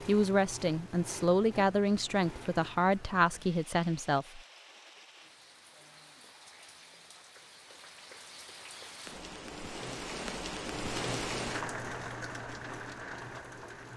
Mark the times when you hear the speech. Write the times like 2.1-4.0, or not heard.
0.1-4.4.